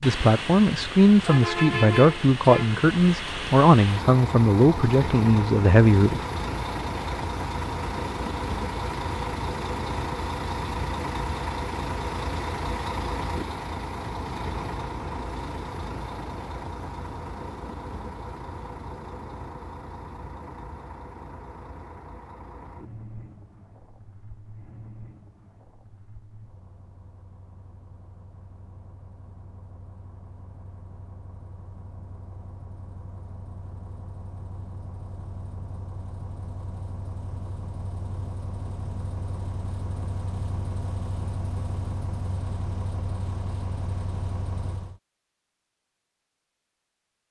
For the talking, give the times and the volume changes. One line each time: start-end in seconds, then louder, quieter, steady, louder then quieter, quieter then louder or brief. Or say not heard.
0.0-6.2 steady.